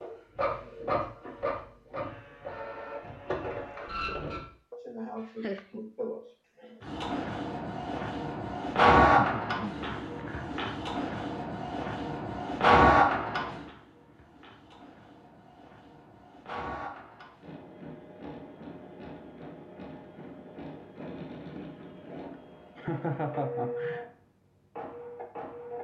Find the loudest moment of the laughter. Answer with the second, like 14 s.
23 s.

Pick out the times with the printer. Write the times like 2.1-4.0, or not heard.
0.0-4.5, 6.8-25.7.